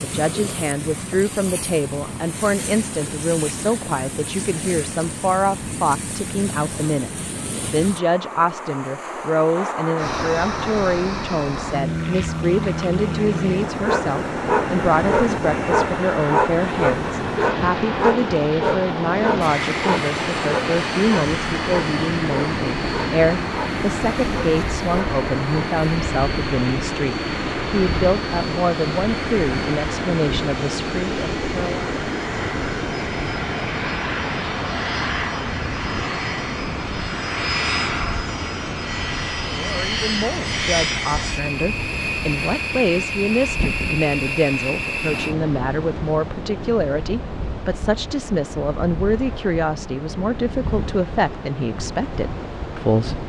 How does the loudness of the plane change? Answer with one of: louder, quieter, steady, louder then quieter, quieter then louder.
steady.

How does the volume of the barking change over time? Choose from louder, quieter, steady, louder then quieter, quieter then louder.
quieter.